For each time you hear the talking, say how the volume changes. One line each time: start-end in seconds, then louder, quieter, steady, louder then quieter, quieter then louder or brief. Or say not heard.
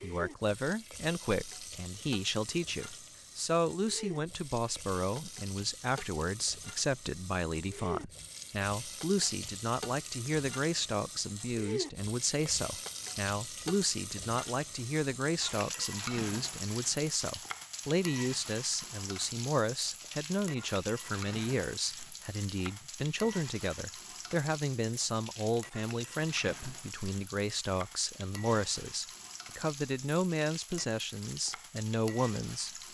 0.0-32.8 steady.